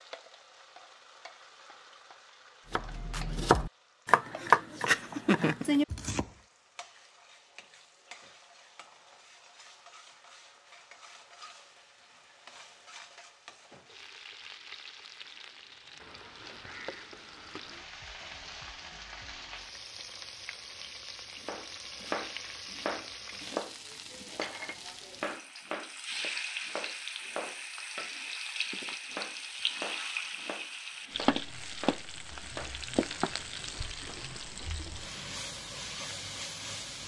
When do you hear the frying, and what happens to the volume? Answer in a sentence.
You can hear the frying from 0.0 to 37.0 s, getting louder.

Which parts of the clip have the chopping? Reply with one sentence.
You can hear the chopping from 2.7 to 6.2 s and from 21.4 to 32.8 s.